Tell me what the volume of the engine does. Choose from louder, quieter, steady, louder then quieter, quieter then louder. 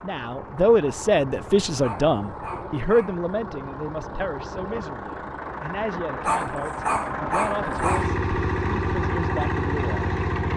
louder.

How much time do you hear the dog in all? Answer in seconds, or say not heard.
3 s.